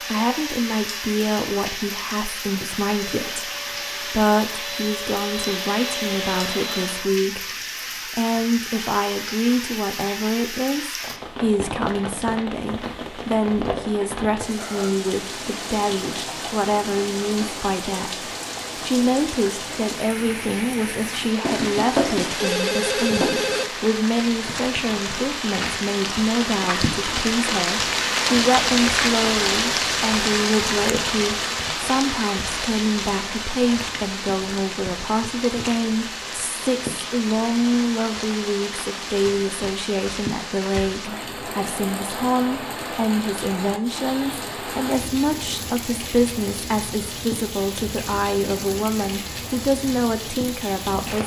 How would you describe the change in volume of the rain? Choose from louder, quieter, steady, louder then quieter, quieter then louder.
louder then quieter.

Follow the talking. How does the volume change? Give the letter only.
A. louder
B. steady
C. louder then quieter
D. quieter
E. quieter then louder
B.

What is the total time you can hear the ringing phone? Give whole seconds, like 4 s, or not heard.
2 s.